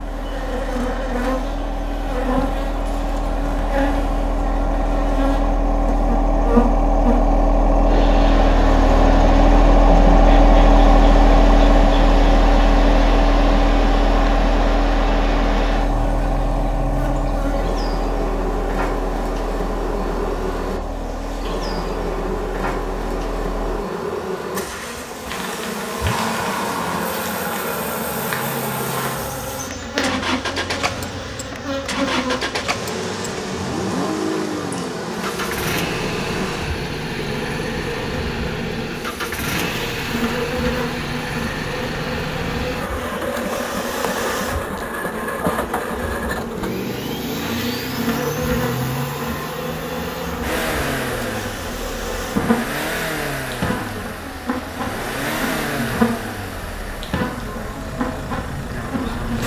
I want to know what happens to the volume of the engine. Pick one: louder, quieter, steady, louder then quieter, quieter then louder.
quieter.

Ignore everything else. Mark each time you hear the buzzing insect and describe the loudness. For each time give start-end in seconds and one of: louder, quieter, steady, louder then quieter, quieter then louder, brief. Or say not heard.
0.0-59.4 steady.